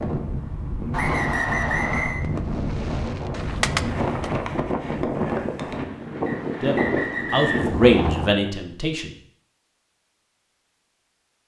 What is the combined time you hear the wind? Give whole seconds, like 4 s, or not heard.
8 s.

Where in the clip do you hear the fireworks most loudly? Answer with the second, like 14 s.
4 s.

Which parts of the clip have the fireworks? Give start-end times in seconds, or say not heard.
2.2-4.5.